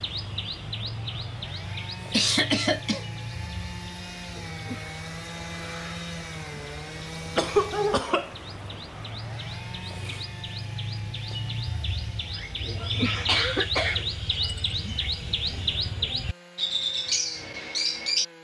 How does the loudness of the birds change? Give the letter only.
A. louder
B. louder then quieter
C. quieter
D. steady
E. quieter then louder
E.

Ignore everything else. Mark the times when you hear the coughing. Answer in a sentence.
You can hear the coughing from 2.1 to 3.0 s, from 7.3 to 8.3 s and from 12.8 to 14.2 s.